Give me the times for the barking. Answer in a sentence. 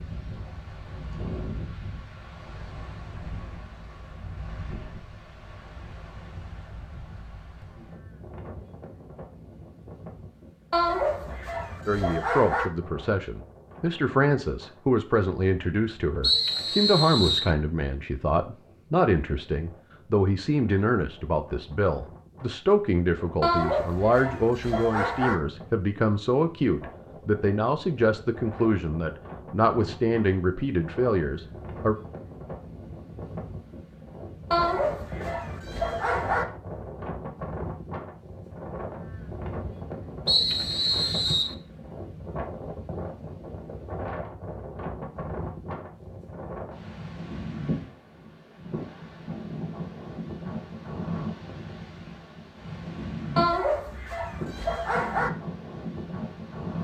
The barking can be heard from 10.7 to 12.7 s, from 23.4 to 25.4 s, from 34.5 to 36.5 s and from 53.4 to 55.3 s.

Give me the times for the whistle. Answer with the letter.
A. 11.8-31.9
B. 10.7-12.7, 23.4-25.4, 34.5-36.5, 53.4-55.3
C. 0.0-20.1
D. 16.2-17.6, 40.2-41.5
D.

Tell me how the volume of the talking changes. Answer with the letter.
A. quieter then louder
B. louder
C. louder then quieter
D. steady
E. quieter
D.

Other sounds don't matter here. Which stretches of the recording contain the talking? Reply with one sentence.
You can hear the talking from 11.8 to 31.9 s.